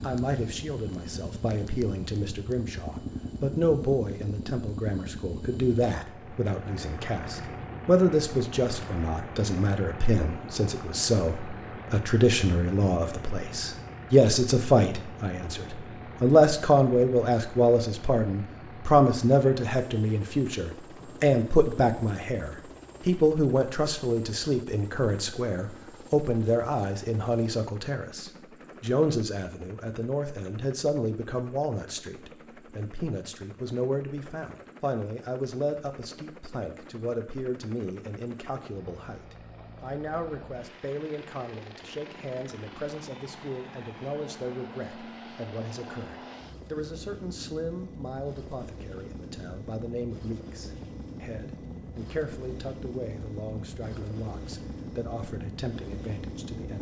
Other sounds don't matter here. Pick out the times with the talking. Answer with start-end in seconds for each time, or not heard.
0.0-56.7.